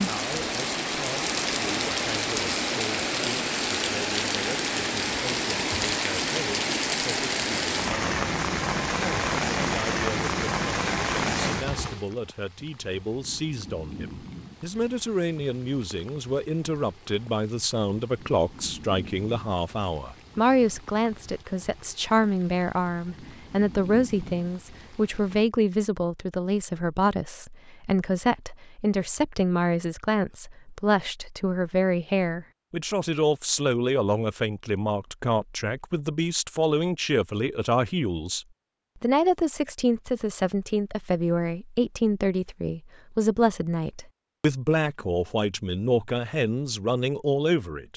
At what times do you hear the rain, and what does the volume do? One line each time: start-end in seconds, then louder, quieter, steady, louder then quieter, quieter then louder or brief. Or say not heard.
0.0-25.5 quieter.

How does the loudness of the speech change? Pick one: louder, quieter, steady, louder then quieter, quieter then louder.
louder.